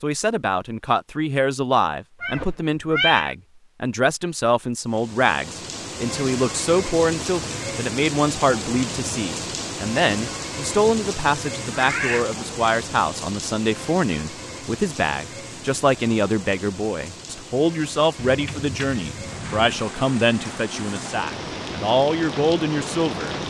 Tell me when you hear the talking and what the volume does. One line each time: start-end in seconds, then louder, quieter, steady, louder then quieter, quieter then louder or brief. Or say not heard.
0.0-23.4 steady.